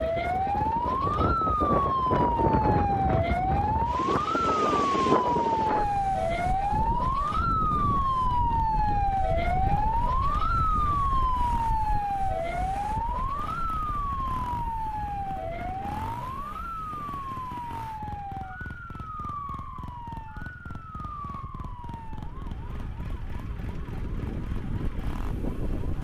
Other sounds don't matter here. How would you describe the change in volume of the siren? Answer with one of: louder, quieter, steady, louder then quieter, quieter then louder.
quieter.